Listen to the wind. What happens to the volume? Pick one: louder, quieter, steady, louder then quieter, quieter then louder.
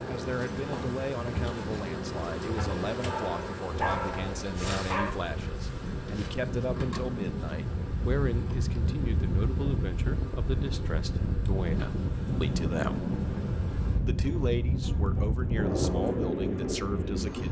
louder.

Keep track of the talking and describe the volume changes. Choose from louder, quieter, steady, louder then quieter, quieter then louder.
steady.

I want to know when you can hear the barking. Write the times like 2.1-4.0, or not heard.
3.0-5.1.